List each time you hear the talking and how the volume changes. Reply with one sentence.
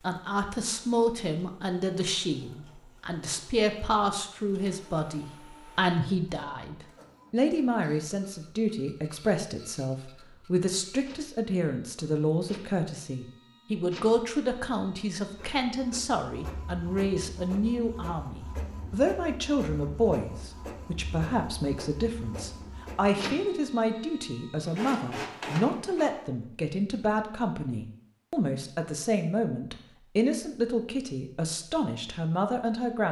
The talking can be heard from 0.0 to 33.0 s, at a steady volume.